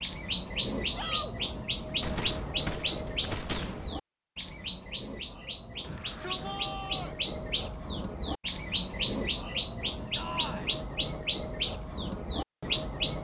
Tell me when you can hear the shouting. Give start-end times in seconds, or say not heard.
0.9-1.4, 5.8-7.2, 10.2-10.8.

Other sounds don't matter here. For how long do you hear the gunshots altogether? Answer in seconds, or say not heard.
2 s.